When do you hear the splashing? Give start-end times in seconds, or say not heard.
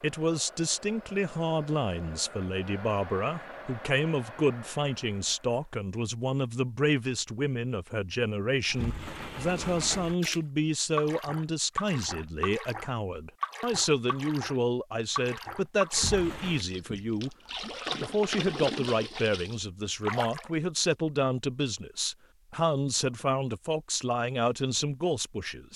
10.2-20.5.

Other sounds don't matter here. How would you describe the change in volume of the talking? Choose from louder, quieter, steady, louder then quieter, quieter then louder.
steady.